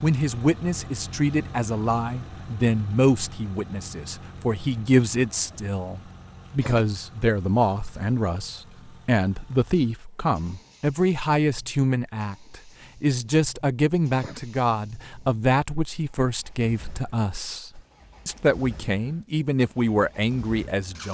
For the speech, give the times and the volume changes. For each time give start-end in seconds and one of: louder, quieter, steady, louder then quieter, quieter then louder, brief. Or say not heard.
0.0-21.0 steady.